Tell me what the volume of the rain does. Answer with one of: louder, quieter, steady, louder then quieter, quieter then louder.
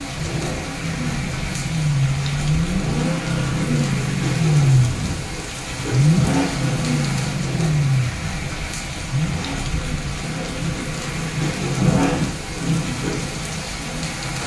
steady.